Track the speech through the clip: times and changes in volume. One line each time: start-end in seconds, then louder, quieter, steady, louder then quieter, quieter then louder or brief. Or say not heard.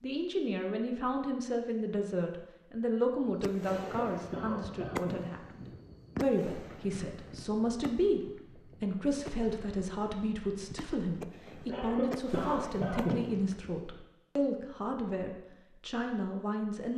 0.0-16.9 steady.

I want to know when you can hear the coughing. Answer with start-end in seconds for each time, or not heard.
3.8-5.2, 11.7-13.2.